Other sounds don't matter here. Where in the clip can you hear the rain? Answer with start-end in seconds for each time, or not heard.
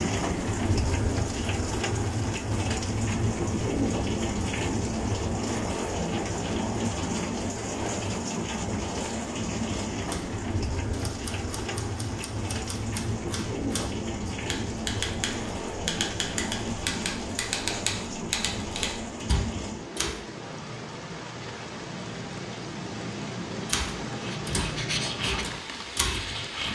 0.0-26.6.